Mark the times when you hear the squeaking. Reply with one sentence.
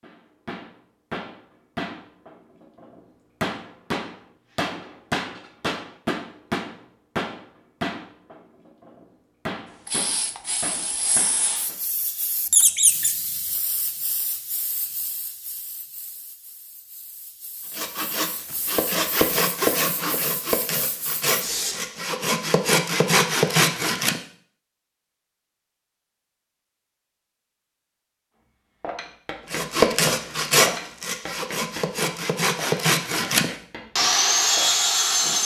The squeaking can be heard from 12.5 to 13.2 s.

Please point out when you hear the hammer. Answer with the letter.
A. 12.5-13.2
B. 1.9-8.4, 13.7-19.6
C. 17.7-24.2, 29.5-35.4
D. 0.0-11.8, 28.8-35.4
D.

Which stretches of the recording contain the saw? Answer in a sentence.
The saw can be heard from 17.7 to 24.2 s and from 29.5 to 35.4 s.